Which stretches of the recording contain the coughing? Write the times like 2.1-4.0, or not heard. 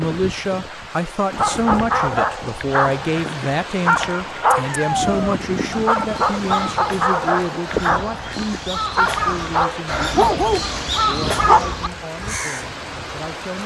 not heard.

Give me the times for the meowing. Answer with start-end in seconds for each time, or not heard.
4.6-5.3.